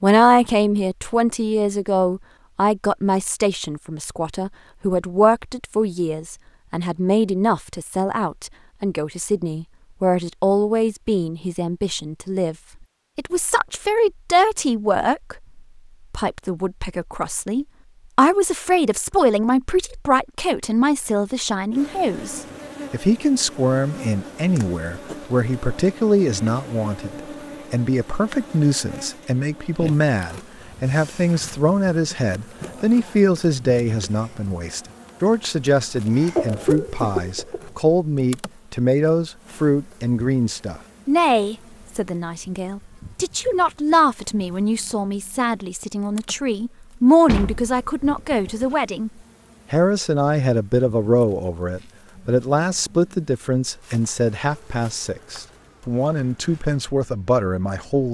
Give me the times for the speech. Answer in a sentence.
You can hear the speech from 0.0 to 12.6 s, from 13.2 to 49.1 s and from 49.7 to 58.0 s.